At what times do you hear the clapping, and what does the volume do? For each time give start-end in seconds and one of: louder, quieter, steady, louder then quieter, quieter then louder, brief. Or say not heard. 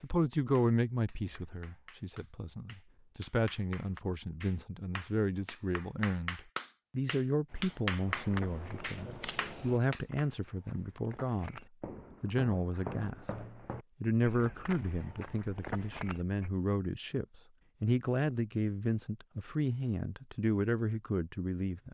0.0-10.2 louder.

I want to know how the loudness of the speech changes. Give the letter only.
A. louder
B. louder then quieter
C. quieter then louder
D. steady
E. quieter
D.